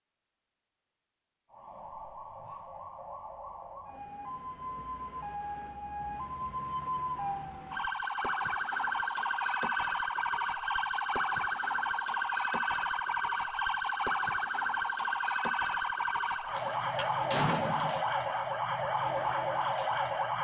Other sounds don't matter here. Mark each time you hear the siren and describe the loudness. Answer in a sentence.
You can hear the siren from 1.5 to 20.3 s, getting louder.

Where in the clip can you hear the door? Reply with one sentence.
You can hear the door from 16.6 to 18.1 s.